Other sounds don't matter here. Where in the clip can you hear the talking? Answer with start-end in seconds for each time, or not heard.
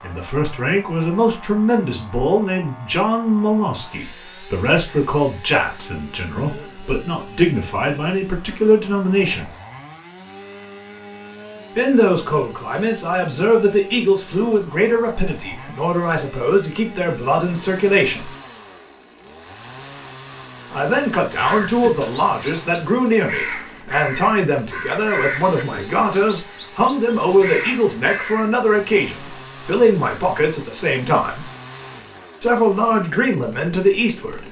0.0-9.5, 11.8-18.3, 20.7-31.5, 32.4-34.4.